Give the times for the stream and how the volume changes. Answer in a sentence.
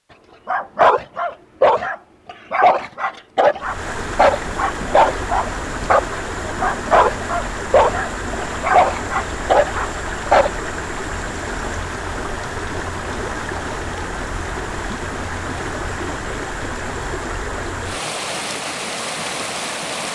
The stream can be heard from 3.5 to 20.0 s, at a steady volume.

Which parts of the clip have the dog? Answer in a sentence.
The dog can be heard from 0.5 to 10.5 s.